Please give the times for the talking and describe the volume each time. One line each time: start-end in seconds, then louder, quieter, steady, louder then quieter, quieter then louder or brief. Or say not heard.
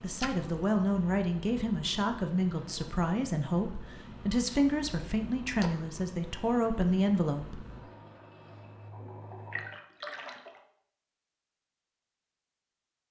0.0-7.7 steady.